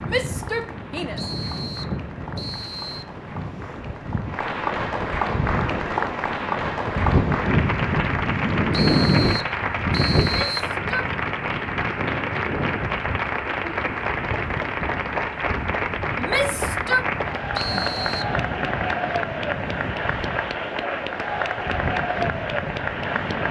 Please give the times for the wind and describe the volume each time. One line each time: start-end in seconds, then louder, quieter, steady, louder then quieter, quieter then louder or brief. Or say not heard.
0.0-23.4 louder then quieter.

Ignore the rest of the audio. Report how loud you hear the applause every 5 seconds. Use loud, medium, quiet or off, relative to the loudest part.
medium, loud, loud, loud, loud.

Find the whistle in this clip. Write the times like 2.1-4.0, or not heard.
1.1-3.0, 8.7-10.7, 17.6-18.4.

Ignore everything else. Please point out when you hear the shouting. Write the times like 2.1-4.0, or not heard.
0.1-1.2, 10.3-11.1, 16.1-17.1.